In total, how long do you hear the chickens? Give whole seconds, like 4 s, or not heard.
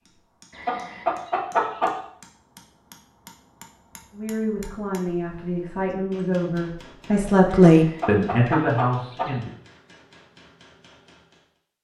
3 s.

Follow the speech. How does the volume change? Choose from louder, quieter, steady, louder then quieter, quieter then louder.
louder then quieter.